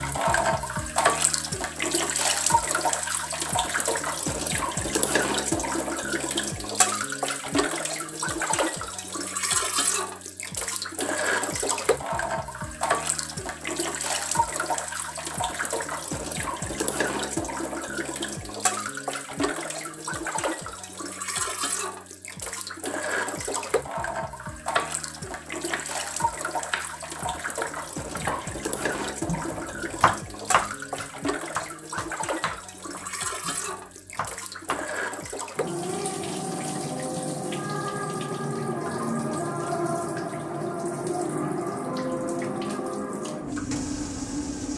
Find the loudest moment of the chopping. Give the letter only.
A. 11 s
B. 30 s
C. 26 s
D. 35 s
B.